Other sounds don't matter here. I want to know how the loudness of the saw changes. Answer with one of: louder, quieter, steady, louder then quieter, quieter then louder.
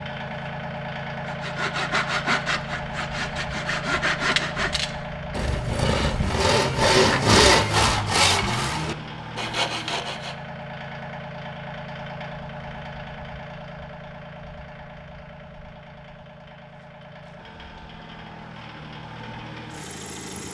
louder then quieter.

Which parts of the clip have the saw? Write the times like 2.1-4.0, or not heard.
1.2-10.3.